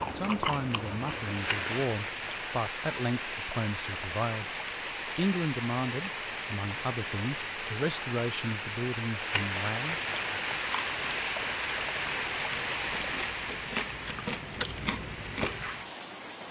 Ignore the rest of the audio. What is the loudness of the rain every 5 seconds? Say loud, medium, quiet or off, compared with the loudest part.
loud, loud, loud, medium.